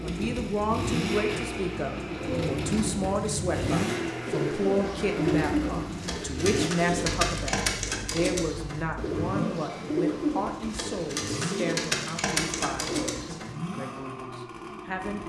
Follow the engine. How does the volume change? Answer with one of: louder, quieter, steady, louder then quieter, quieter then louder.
quieter.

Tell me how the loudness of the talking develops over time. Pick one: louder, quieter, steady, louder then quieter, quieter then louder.
quieter.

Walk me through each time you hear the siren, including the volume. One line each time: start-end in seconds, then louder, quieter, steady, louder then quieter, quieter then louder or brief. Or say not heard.
not heard.